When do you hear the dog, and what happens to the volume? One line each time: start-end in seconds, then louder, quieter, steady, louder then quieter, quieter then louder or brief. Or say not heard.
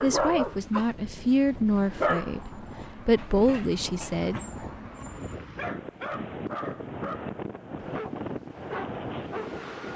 0.0-9.9 quieter then louder.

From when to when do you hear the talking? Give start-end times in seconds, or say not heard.
0.0-4.3.